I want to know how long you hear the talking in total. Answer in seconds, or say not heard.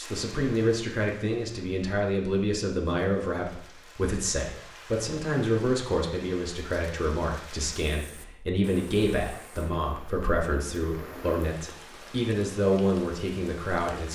14 s.